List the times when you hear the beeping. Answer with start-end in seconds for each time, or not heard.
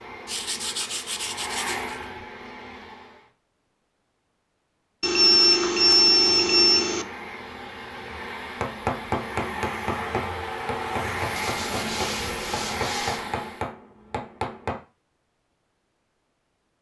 5.0-7.0.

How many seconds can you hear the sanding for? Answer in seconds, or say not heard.
4 s.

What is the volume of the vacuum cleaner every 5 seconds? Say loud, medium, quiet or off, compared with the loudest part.
medium, medium, loud, off.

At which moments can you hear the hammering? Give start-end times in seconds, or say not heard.
8.6-14.8.